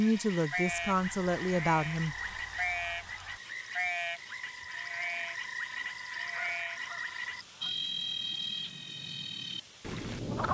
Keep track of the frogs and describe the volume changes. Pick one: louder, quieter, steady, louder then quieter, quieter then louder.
steady.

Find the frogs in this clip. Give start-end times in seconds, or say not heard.
0.0-10.4.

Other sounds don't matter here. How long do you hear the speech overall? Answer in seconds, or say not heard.
2 s.